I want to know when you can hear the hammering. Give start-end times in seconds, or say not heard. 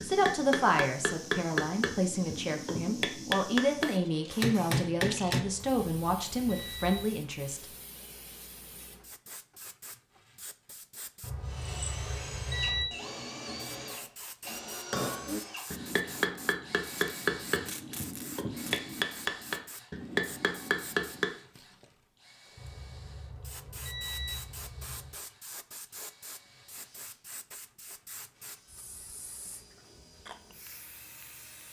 0.0-5.5, 14.9-21.3.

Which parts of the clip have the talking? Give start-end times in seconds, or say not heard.
0.0-7.7.